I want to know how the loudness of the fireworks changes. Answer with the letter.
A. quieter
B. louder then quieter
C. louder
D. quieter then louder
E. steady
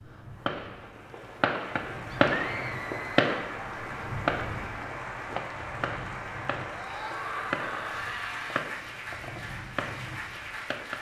A.